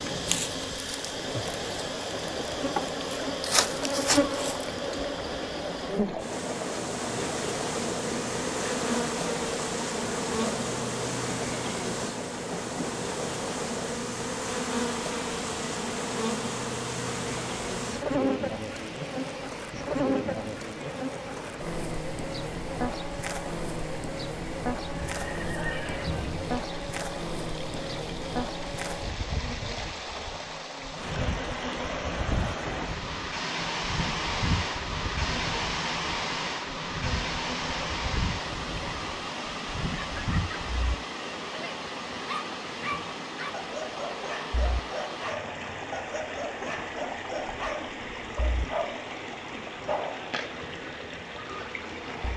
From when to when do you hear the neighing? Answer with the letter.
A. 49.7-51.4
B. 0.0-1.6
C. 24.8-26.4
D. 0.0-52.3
C.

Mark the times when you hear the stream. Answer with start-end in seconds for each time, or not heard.
0.0-52.3.